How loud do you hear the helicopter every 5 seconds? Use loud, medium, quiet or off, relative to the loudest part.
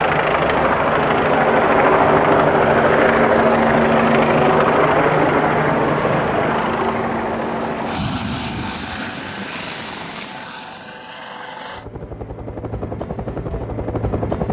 loud, medium, quiet.